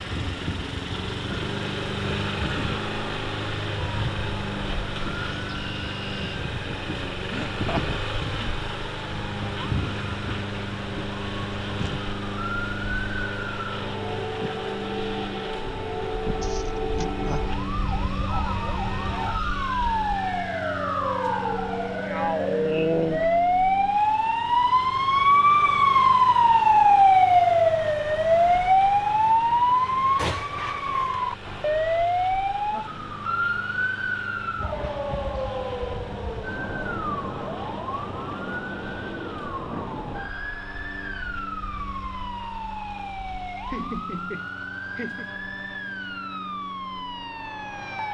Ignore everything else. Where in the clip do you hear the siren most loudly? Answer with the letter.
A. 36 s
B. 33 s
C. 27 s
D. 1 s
C.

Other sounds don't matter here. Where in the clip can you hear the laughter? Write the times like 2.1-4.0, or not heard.
7.3-8.5, 16.4-17.4, 43.6-45.3.